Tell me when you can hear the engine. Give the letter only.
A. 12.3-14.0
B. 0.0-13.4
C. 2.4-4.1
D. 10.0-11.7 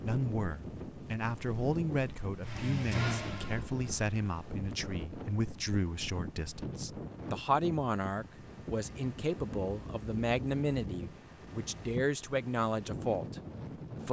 C.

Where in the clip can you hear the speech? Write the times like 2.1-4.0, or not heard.
0.0-13.4.